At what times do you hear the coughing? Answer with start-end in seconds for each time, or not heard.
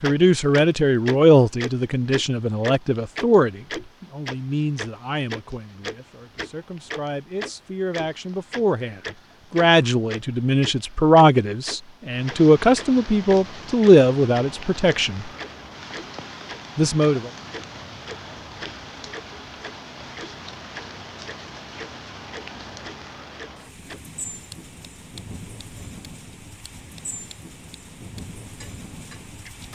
not heard.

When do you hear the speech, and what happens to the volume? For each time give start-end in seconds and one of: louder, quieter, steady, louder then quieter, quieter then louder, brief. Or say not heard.
0.0-15.3 quieter then louder
16.8-17.3 brief.